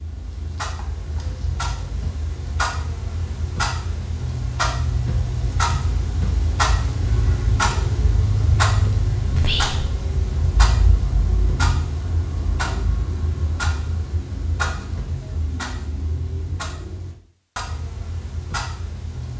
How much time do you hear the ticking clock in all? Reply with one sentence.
You can hear the ticking clock for 19 seconds altogether.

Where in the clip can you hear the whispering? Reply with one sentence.
You can hear the whispering from 9.3 to 9.9 s.